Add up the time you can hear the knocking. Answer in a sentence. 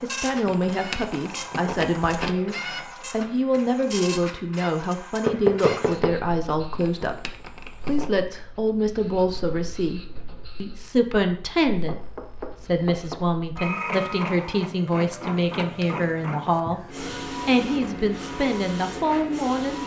You can hear the knocking for 2 seconds altogether.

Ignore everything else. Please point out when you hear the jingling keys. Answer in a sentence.
The jingling keys can be heard from 0.5 to 2.4 s, from 6.8 to 8.1 s and from 15.6 to 16.1 s.